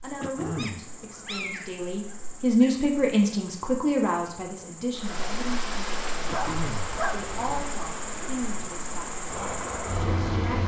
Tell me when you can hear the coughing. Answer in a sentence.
You can hear the coughing from 0.2 to 0.8 s and from 6.2 to 7.0 s.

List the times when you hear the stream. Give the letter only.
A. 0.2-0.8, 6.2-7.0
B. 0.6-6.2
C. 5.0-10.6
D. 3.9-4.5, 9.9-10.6
C.